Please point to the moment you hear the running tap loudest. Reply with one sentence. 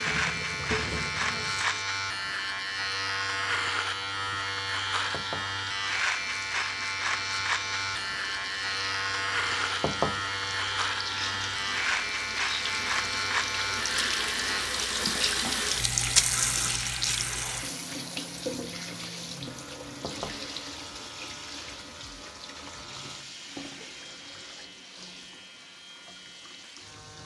The volume of the running tap peaks at 16 seconds.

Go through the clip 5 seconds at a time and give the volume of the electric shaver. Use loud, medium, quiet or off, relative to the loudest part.
loud, loud, loud, quiet, quiet, quiet.